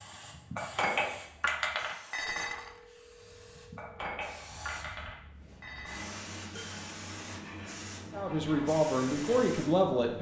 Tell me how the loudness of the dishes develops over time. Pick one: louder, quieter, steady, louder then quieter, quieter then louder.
quieter.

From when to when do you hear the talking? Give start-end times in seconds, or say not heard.
8.1-10.1.